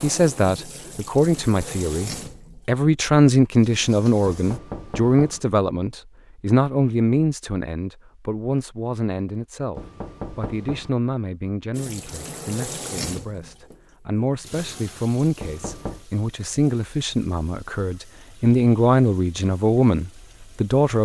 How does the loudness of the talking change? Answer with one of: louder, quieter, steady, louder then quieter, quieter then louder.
quieter then louder.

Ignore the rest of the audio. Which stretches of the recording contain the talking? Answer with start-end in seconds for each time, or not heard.
0.0-21.0.